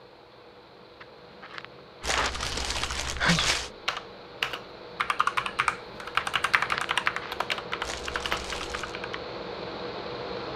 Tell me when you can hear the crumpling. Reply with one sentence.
You can hear the crumpling from 2.0 to 3.7 s and from 7.8 to 8.9 s.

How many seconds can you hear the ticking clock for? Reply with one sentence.
The ticking clock can't be heard in this clip.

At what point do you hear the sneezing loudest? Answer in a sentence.
The volume of the sneezing peaks at 3 seconds.